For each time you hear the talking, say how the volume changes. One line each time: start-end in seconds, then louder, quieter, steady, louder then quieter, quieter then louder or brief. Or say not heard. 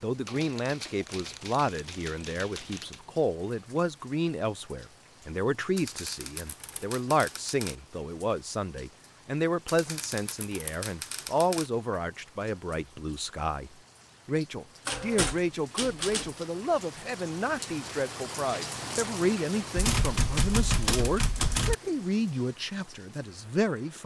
0.0-24.0 steady.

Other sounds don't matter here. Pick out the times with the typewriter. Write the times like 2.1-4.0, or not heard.
0.2-3.0, 5.8-7.8, 9.7-11.7, 14.8-16.4, 19.8-21.8.